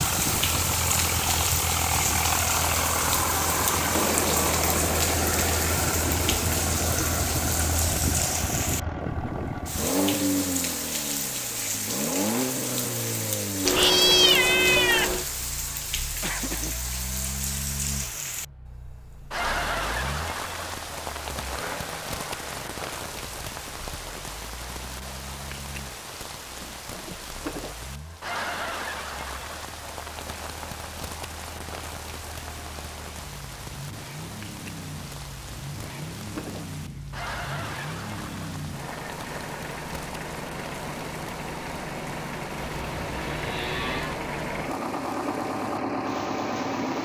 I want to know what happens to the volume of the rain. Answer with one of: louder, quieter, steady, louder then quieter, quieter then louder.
quieter.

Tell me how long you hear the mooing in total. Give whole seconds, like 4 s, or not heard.
3 s.